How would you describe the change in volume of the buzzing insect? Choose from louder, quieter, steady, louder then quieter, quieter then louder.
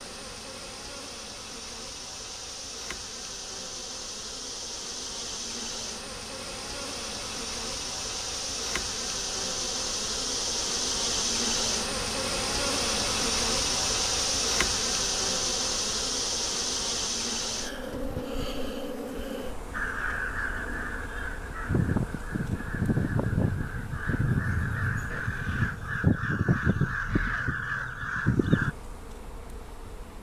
louder then quieter.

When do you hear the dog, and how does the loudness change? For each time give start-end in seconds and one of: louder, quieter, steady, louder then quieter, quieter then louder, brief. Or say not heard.
not heard.